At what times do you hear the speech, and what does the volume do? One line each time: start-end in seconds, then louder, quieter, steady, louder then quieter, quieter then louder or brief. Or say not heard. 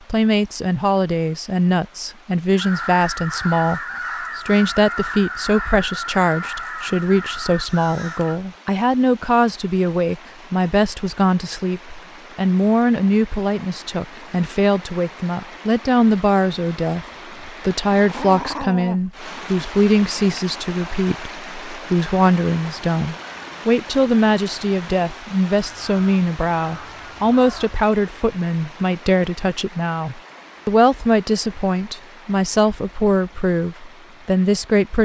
0.1-34.9 steady.